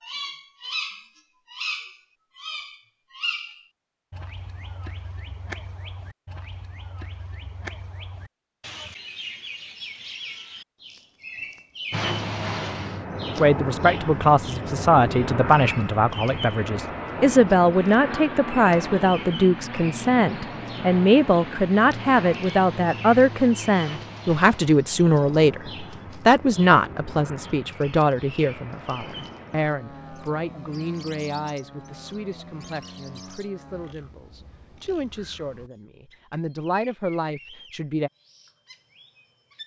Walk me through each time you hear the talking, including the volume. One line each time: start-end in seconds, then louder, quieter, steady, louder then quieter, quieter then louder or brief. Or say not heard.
13.3-38.1 quieter.